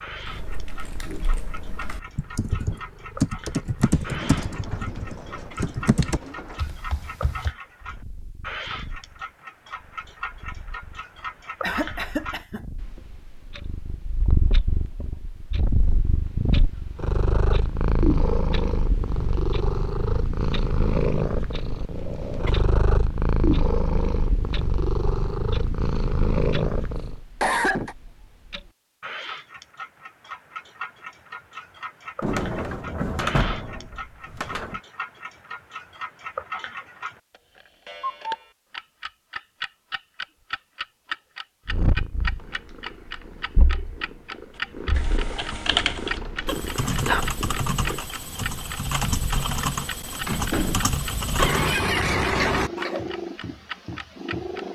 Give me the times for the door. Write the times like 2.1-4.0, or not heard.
4.0-6.7, 32.2-34.8, 50.2-51.0.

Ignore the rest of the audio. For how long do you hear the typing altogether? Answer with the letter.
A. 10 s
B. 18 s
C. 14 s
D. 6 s
C.